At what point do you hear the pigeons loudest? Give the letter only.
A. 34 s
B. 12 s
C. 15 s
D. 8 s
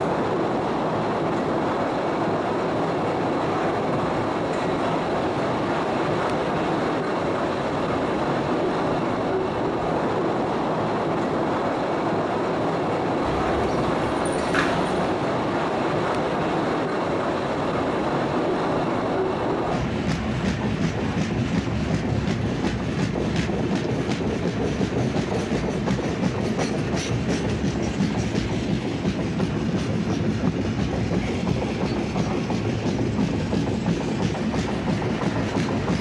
C.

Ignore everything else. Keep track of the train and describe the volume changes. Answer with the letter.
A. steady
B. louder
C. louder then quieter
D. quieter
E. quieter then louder
A.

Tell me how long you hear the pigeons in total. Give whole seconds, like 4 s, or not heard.
2 s.